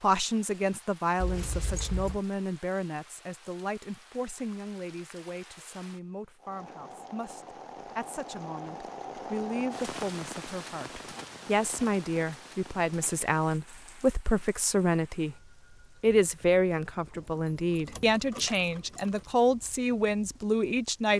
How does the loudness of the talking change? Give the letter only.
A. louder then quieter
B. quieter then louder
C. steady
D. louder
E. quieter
B.